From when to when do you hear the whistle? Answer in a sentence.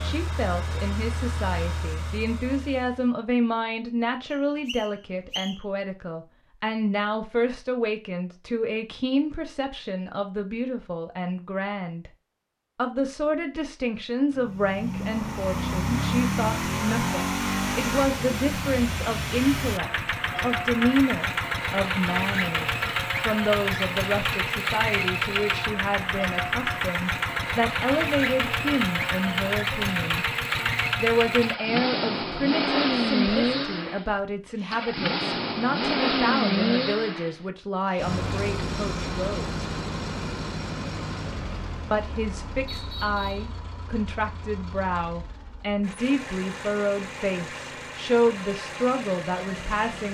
You can hear the whistle from 4.3 to 5.5 s and from 42.6 to 43.5 s.